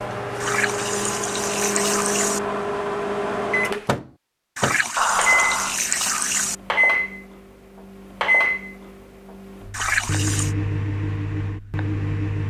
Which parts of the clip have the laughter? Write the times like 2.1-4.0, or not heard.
5.0-5.8.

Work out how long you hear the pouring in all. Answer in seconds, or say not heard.
5 s.